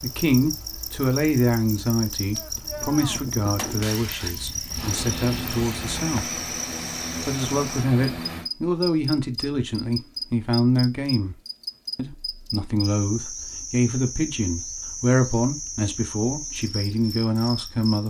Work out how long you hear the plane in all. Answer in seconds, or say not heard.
4 s.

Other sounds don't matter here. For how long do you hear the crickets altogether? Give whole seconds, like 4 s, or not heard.
18 s.